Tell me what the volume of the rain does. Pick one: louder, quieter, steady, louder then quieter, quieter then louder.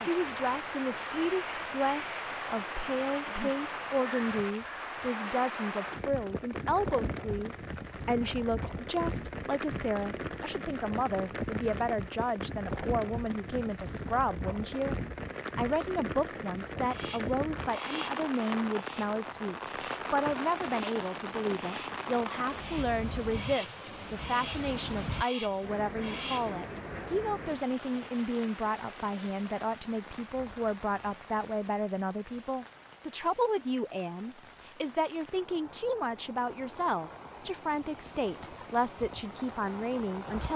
quieter.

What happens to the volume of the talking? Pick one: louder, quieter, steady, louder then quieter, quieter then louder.
steady.